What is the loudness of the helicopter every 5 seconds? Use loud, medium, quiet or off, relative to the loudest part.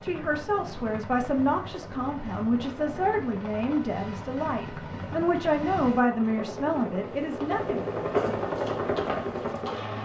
medium, loud.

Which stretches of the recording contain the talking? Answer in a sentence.
You can hear the talking from 0.0 to 7.9 s.